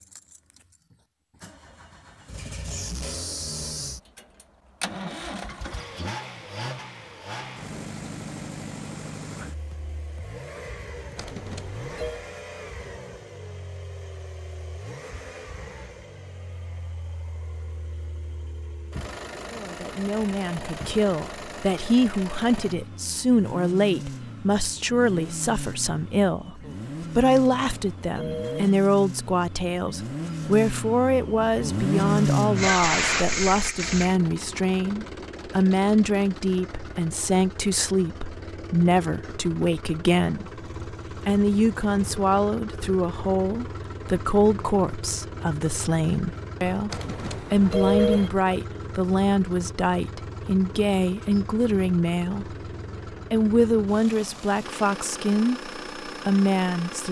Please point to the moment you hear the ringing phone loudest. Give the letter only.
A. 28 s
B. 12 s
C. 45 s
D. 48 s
D.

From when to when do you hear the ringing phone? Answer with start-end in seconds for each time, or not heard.
11.2-12.2, 27.3-28.8, 46.9-48.3.